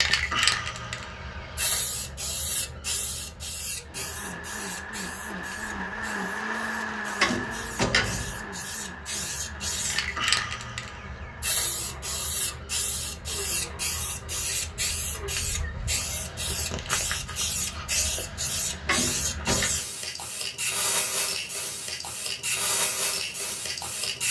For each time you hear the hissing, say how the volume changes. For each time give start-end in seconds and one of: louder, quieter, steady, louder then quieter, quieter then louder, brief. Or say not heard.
0.0-24.2 quieter then louder.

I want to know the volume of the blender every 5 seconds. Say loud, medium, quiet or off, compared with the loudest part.
medium, loud, medium, medium, off.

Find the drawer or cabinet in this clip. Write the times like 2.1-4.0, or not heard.
7.2-8.4, 18.9-19.7.